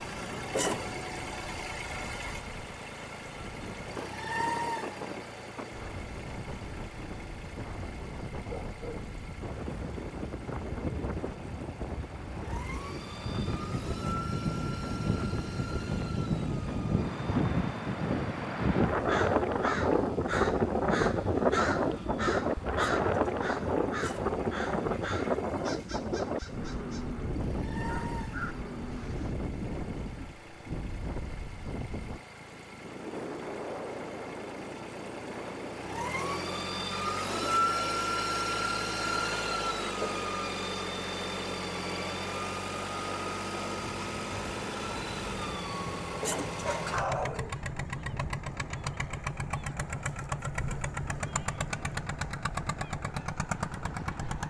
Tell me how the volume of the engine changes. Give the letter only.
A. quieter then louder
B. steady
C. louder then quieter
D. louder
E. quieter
A.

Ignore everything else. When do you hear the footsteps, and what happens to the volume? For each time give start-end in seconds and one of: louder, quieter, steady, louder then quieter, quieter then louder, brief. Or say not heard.
not heard.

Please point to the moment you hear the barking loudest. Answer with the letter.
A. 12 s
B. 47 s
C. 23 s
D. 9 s
B.